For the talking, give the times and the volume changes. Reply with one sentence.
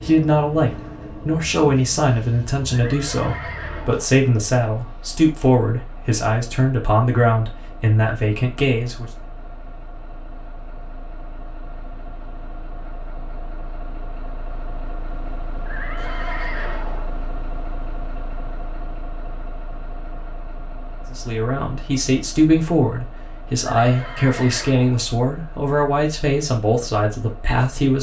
You can hear the talking from 0.0 to 9.1 s, at a steady volume; and from 21.1 to 27.9 s, at a steady volume.